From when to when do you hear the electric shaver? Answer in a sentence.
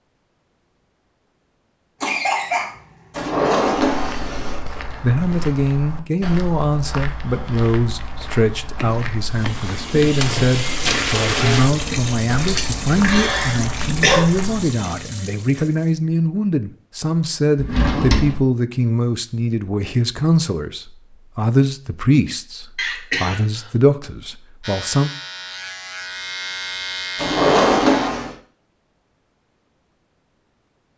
The electric shaver can be heard from 24.6 to 28.1 s.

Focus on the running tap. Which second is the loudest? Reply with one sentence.
The loudest moment of the running tap is at 11 seconds.